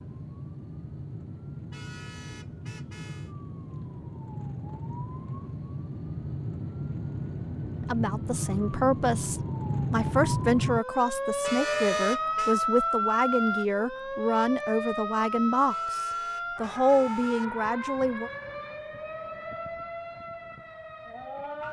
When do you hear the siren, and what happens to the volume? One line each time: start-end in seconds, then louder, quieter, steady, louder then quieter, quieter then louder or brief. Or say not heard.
0.0-21.6 louder then quieter.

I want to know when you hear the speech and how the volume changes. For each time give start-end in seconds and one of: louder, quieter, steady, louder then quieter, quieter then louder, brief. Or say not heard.
7.8-18.3 steady.